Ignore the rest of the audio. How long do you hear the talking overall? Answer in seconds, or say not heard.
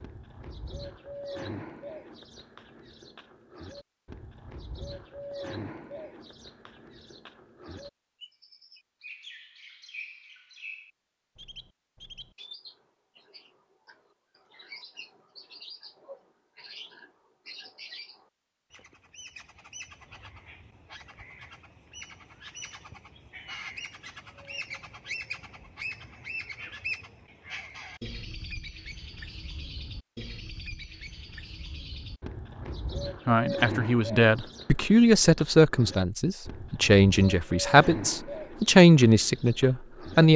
7 s.